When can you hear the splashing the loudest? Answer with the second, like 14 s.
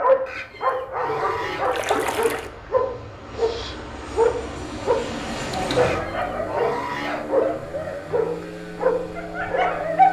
2 s.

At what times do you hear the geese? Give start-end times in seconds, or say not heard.
0.2-1.7, 5.8-7.4.